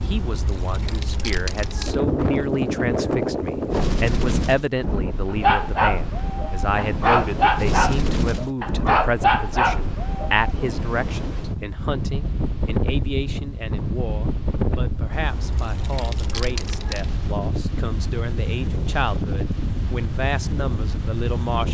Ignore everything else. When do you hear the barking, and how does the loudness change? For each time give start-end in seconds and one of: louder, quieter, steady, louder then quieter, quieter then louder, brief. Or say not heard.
5.3-10.3 steady.